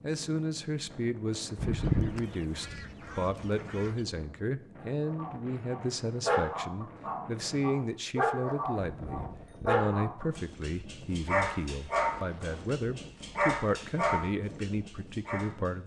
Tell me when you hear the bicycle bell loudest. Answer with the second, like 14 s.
2 s.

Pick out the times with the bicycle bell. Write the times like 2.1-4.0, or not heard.
1.6-2.2, 8.8-9.8.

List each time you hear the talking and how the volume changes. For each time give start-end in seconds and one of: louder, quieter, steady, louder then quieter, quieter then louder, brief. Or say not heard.
0.0-15.8 steady.